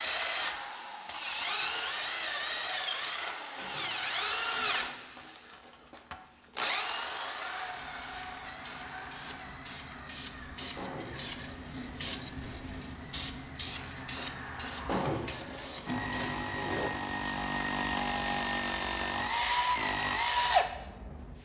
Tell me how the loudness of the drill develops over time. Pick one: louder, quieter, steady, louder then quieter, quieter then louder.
quieter then louder.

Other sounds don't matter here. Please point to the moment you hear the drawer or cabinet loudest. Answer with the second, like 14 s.
15 s.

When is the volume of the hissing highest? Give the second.
12 s.